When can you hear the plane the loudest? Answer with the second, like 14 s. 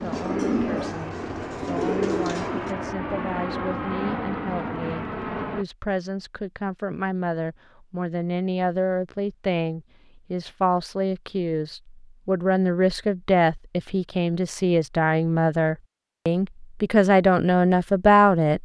4 s.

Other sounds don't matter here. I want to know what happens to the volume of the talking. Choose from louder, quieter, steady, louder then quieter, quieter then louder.
louder.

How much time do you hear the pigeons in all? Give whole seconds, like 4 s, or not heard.
3 s.